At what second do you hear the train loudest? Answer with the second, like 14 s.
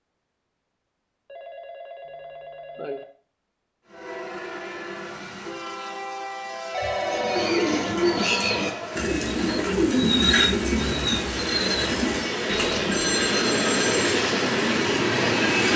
15 s.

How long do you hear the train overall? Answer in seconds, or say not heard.
12 s.